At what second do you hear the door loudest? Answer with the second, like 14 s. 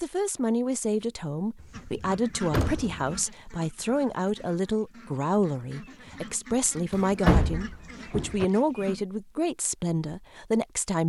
7 s.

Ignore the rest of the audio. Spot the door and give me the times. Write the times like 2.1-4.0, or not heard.
1.6-3.2, 6.9-8.4.